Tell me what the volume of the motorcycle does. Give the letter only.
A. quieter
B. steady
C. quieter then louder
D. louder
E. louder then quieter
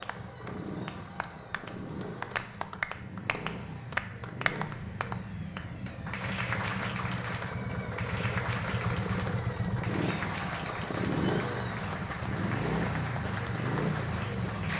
D.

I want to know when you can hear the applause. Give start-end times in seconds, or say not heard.
0.0-14.7.